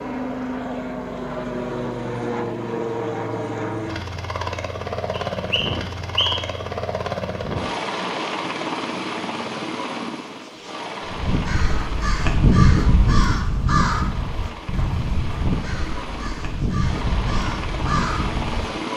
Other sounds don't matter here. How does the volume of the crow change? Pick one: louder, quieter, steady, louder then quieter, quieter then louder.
quieter.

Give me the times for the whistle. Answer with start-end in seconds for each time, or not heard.
5.3-6.6.